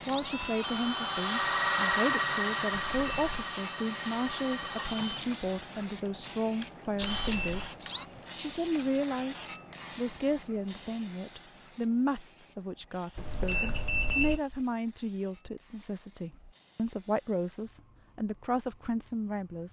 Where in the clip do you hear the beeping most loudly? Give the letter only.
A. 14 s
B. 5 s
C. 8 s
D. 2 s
A.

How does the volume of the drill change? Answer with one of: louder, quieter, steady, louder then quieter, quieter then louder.
quieter.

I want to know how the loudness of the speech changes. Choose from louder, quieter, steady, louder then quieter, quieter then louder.
steady.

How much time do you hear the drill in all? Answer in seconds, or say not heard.
8 s.